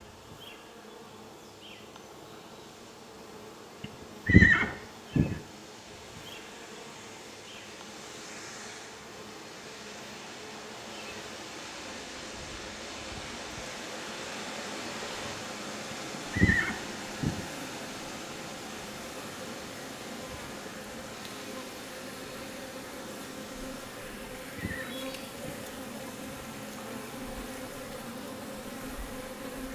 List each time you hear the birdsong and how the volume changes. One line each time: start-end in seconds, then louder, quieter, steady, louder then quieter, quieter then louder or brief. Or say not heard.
not heard.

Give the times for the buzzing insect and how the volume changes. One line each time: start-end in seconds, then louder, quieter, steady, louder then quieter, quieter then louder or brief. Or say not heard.
0.0-29.7 louder.